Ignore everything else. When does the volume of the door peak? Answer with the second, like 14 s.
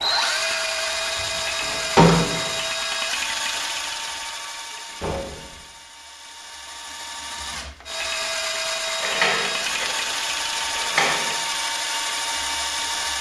2 s.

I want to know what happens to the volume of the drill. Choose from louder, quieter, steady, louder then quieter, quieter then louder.
quieter then louder.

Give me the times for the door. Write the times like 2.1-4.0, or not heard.
0.9-2.5, 4.8-5.7, 9.0-11.3.